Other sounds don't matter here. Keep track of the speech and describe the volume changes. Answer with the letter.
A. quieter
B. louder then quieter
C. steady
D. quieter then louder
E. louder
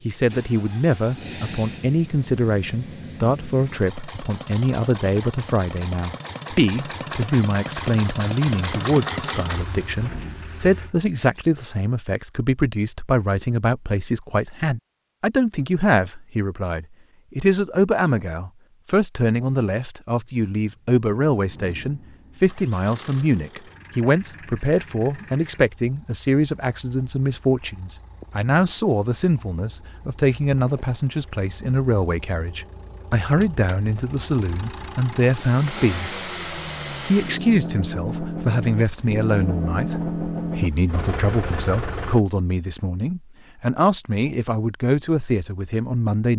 C.